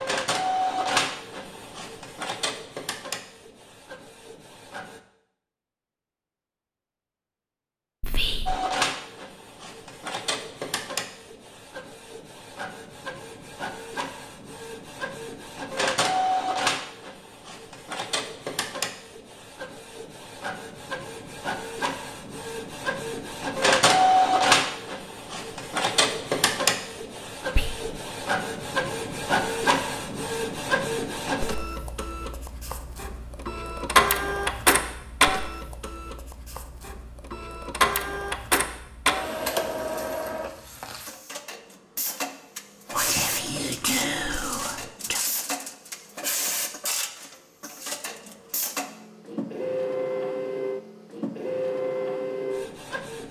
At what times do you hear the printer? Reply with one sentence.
You can hear the printer from 0.0 to 5.0 s and from 8.4 to 53.2 s.